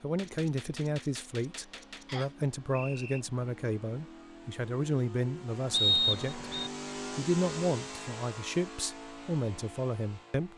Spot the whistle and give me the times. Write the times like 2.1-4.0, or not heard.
2.0-3.2, 5.7-6.7.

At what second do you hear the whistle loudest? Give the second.
6 s.